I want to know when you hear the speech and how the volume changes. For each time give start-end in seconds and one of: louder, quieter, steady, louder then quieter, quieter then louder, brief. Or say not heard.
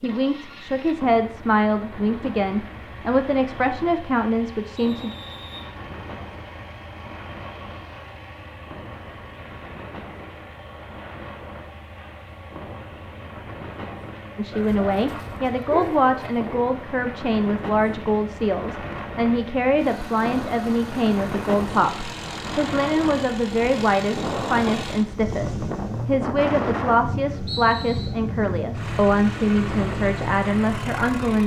0.0-5.1 steady
14.3-31.4 steady.